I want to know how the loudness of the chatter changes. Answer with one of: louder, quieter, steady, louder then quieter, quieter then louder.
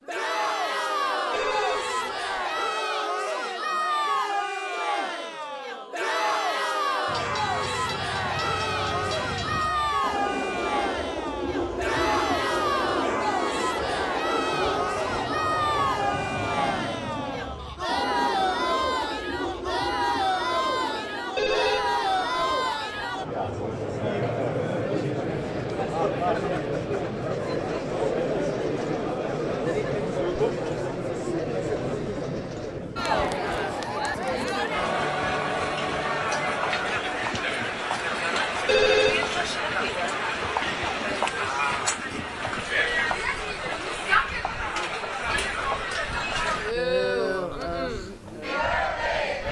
steady.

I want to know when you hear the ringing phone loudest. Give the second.
39 s.